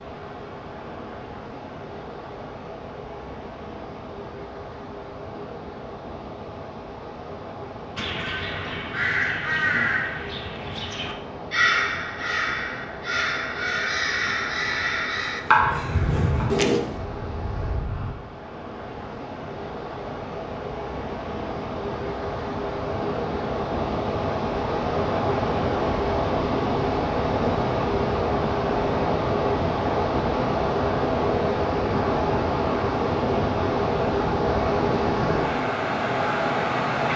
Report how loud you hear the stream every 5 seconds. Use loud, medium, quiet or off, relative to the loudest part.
quiet, quiet, quiet, quiet, medium, loud, loud, loud.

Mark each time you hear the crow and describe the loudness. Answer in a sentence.
You can hear the crow from 8.0 to 18.1 s, at a steady volume.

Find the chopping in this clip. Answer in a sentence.
The chopping can be heard from 14.7 to 16.5 s.